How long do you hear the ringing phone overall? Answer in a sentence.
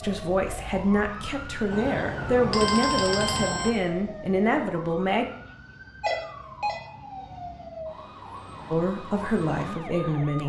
The ringing phone can be heard for 3 seconds in total.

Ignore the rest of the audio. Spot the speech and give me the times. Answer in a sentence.
You can hear the speech from 0.0 to 5.2 s and from 8.7 to 10.4 s.